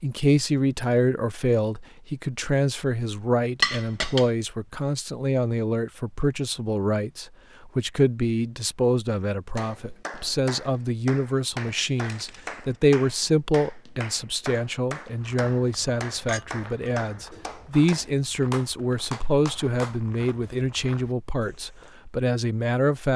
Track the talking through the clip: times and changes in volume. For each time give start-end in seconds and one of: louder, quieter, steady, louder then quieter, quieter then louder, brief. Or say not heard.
0.0-23.1 steady.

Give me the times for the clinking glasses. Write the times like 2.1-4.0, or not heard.
3.6-4.3, 11.7-12.6, 16.2-16.9.